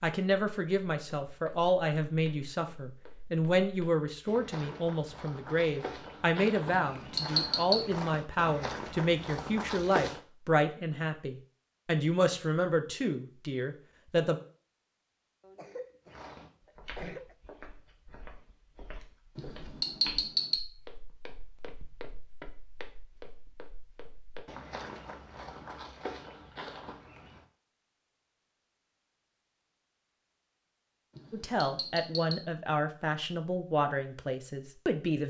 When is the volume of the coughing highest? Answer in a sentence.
The loudest moment of the coughing is at 17 seconds.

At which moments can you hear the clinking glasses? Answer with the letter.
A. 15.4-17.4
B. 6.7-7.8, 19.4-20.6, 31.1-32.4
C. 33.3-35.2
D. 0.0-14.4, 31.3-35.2
B.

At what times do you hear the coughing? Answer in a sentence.
The coughing can be heard from 15.4 to 17.4 s.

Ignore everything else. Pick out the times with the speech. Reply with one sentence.
The speech can be heard from 0.0 to 14.4 s and from 31.3 to 35.2 s.